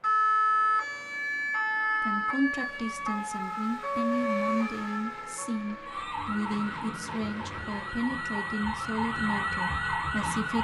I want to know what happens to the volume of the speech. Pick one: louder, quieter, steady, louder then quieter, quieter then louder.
steady.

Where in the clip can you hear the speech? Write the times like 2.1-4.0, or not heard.
2.0-10.5.